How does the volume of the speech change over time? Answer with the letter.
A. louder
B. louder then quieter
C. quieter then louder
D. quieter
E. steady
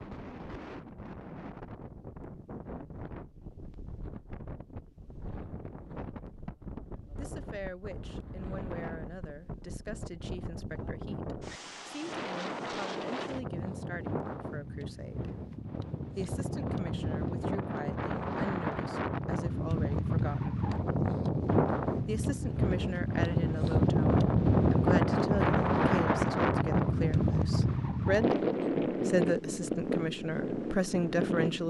A.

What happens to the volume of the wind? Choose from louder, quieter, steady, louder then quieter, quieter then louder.
louder.